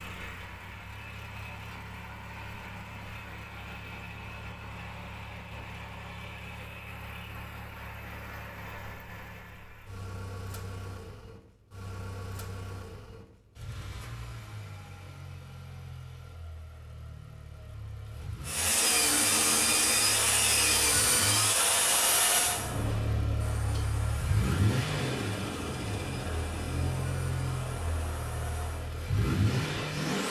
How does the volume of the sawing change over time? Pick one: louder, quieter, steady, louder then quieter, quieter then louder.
quieter.